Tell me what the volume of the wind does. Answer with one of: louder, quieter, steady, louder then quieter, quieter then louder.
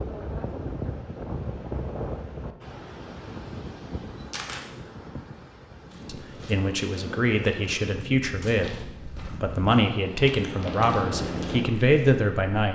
quieter then louder.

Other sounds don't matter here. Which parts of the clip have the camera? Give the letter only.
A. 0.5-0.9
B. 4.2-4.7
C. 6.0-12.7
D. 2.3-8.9
B.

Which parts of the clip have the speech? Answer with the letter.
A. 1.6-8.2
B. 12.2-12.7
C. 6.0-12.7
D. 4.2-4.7
C.